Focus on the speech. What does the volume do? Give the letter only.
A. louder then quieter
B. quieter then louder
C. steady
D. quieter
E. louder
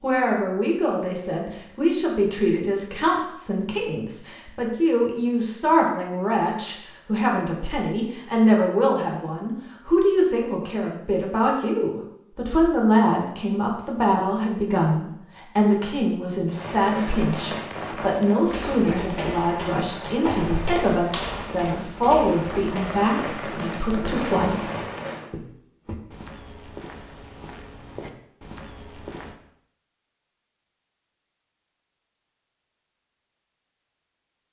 C.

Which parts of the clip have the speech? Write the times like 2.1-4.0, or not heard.
0.0-24.6.